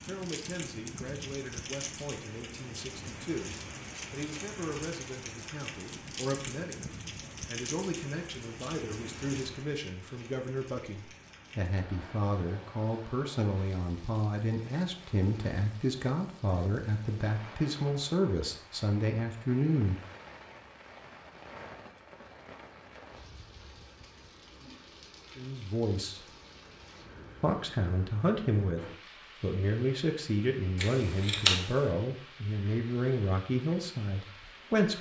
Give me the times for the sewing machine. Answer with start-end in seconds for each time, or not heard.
not heard.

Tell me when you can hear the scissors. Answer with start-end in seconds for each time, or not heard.
30.8-31.7.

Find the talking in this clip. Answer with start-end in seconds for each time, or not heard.
0.0-20.0, 25.4-26.3, 27.4-34.9.